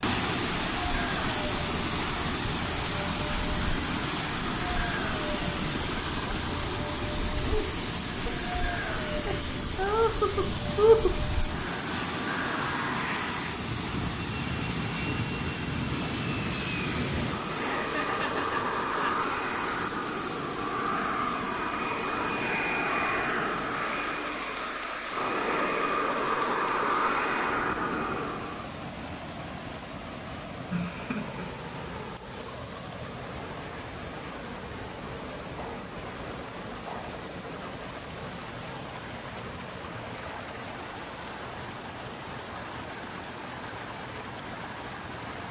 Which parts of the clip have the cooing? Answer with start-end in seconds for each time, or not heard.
not heard.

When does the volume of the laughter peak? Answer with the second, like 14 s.
11 s.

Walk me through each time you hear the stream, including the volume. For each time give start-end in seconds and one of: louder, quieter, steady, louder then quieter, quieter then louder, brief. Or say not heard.
0.0-45.4 quieter.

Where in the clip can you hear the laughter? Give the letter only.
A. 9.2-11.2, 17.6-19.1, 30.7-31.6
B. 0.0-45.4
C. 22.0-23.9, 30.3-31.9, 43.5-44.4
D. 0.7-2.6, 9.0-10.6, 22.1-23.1
A.